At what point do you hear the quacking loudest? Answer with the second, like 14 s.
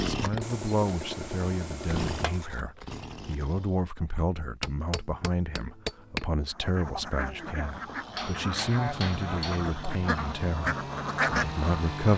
11 s.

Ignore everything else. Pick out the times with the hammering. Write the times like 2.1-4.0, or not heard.
0.4-2.5, 4.6-6.2, 8.2-9.7.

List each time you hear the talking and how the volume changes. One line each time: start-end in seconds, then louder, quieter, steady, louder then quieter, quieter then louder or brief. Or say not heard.
0.0-12.1 steady.